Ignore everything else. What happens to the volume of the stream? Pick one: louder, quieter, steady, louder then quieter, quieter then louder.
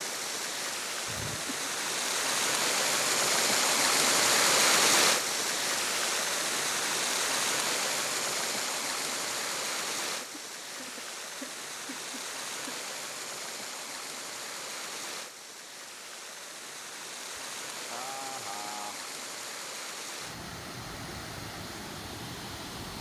quieter.